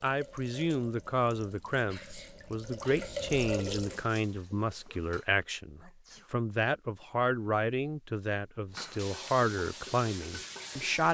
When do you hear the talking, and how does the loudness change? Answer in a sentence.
You can hear the talking from 0.0 to 11.0 s, at a steady volume.